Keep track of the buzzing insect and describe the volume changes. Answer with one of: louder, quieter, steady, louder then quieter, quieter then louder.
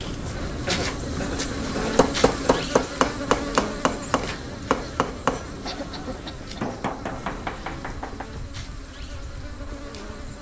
quieter.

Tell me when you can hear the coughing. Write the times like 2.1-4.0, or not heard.
0.7-2.6, 5.7-6.8.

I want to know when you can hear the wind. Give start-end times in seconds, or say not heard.
0.0-10.3.